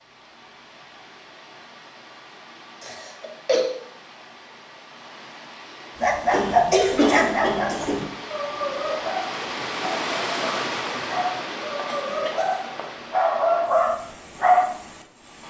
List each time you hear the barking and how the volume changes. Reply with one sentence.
You can hear the barking from 6.0 to 14.8 s, getting quieter then louder.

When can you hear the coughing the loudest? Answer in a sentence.
The volume of the coughing peaks at 7 seconds.